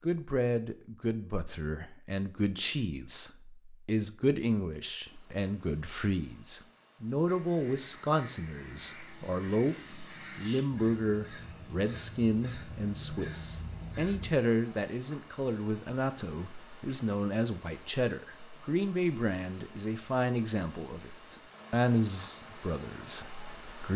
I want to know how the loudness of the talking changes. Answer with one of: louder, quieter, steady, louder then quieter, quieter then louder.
steady.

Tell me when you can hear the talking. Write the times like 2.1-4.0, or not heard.
0.0-23.9.